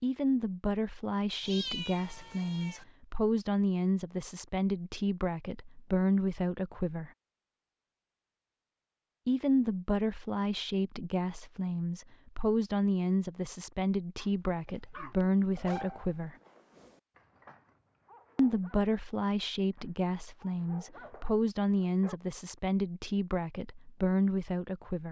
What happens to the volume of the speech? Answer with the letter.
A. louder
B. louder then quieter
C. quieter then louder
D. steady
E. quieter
D.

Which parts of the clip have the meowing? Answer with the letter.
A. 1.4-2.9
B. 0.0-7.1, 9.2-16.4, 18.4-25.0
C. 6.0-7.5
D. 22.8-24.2
A.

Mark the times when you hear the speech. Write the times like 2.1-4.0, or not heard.
0.0-7.1, 9.2-16.4, 18.4-25.0.